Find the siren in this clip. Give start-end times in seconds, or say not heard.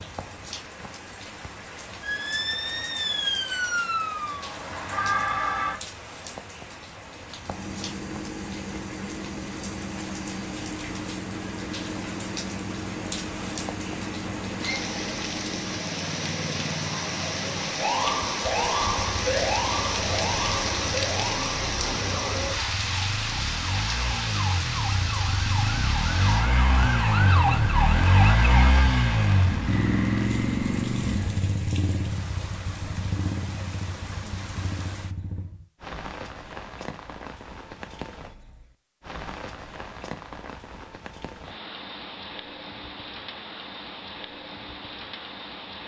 2.0-5.8, 17.8-28.8.